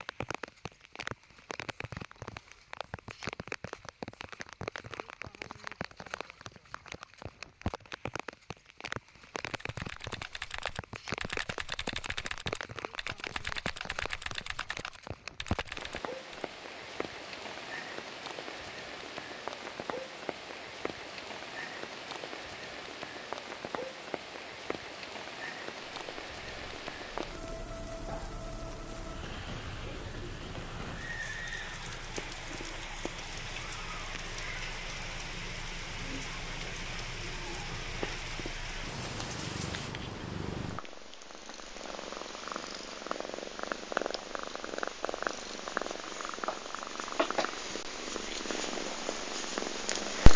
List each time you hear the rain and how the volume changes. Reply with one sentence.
The rain can be heard from 0.0 to 40.0 s, at a steady volume.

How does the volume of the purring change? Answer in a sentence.
The loudness of the purring goes up.